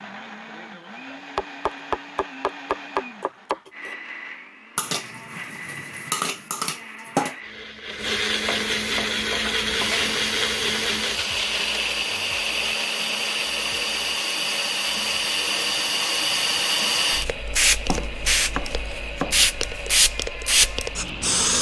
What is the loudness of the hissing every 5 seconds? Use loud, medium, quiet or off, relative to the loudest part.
off, off, medium, loud, loud.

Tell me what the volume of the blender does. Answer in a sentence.
The loudness of the blender goes up, then down.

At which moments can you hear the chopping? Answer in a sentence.
The chopping can be heard from 1.4 to 4.0 s, from 8.4 to 10.2 s and from 17.9 to 19.5 s.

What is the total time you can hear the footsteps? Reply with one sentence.
You can't hear the footsteps here.